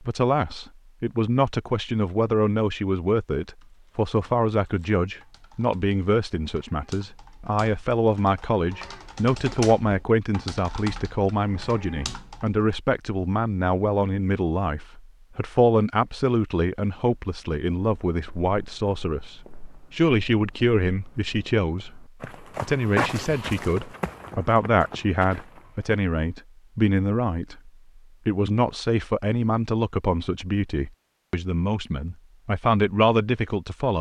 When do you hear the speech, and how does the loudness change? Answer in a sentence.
The speech can be heard from 0.0 to 33.9 s, at a steady volume.